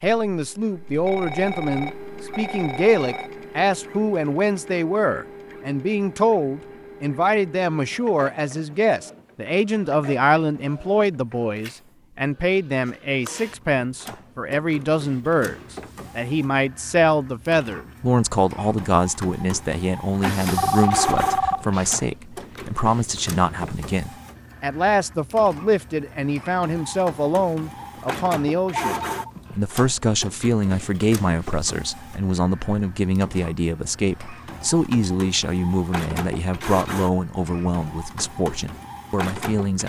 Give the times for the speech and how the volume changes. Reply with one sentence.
The speech can be heard from 0.0 to 39.8 s, at a steady volume.